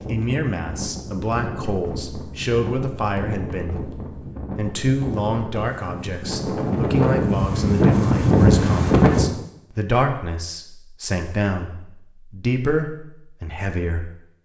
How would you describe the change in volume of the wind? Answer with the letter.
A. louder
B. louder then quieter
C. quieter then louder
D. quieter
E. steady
A.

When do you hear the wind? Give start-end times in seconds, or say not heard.
0.0-9.3.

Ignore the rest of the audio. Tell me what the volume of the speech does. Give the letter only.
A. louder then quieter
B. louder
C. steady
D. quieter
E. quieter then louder
C.